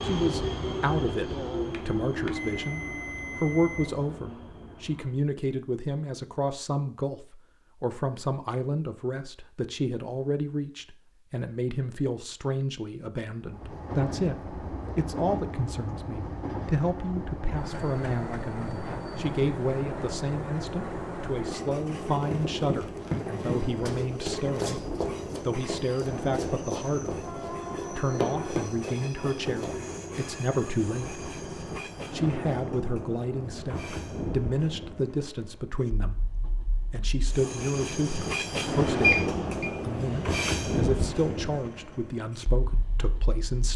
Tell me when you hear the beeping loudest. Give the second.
39 s.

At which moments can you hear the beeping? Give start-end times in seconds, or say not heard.
1.6-4.2, 39.0-39.8.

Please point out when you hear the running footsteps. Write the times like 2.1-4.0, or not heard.
22.0-29.8.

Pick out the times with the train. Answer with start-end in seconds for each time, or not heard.
0.0-5.2, 13.4-43.7.